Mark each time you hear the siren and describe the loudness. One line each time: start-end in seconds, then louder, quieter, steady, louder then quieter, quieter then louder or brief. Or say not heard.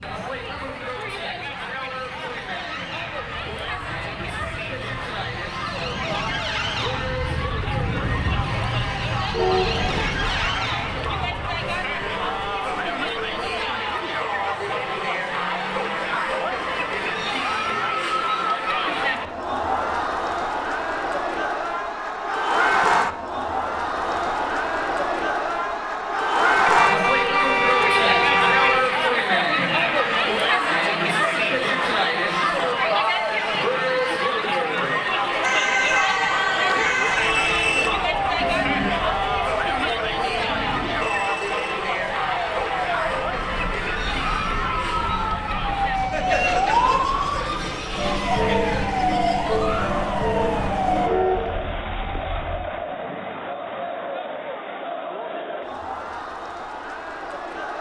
0.0-18.1 louder then quieter
35.4-51.1 quieter then louder.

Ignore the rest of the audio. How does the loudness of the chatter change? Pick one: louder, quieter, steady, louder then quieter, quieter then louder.
louder then quieter.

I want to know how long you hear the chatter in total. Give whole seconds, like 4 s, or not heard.
58 s.